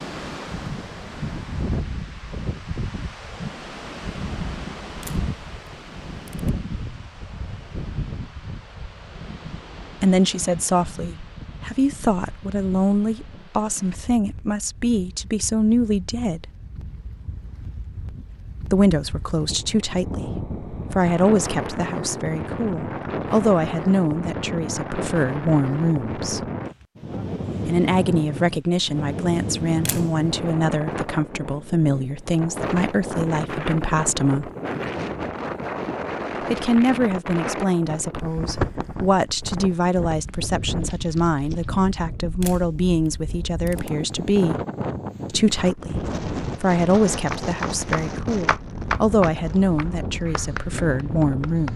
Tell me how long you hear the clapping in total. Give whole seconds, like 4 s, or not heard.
5 s.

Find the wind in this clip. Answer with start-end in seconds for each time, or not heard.
0.0-51.7.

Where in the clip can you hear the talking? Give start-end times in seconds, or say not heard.
10.0-16.4, 18.7-26.4, 27.6-34.5, 36.4-44.6, 45.3-51.7.